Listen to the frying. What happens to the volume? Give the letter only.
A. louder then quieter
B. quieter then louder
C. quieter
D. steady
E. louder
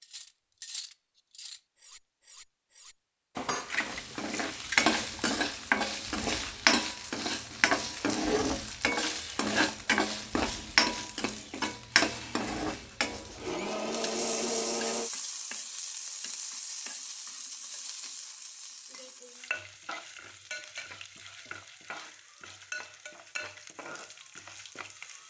C.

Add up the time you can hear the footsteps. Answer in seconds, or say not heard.
not heard.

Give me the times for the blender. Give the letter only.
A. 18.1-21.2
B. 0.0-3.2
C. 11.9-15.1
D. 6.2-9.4
C.